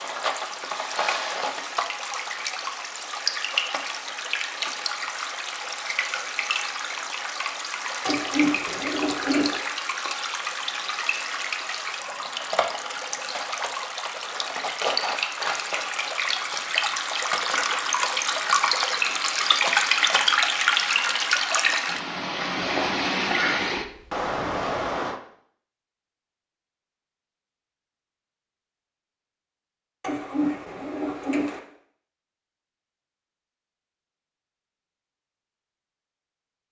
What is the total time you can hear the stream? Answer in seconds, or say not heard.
25 s.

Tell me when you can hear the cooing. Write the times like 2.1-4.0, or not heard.
8.1-9.6, 30.0-31.6.